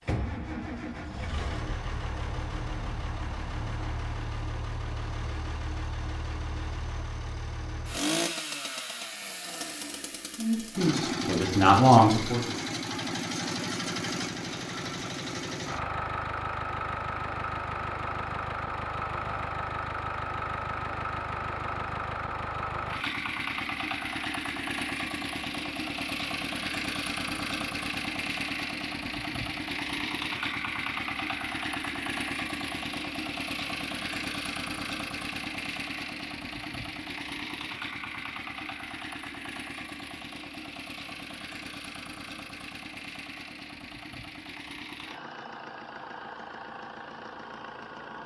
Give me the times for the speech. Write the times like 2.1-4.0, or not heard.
10.3-12.5.